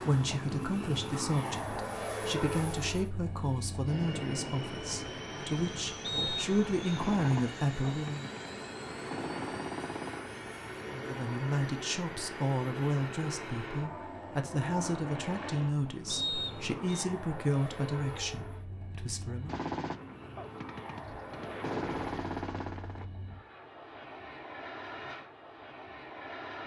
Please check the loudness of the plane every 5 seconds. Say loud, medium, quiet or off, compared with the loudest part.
loud, loud, loud, medium, medium, medium.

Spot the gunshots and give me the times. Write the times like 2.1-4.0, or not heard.
7.0-10.3, 19.4-23.1.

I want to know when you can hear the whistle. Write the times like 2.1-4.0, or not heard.
6.0-7.0, 16.1-17.1.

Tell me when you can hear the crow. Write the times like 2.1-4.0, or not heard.
not heard.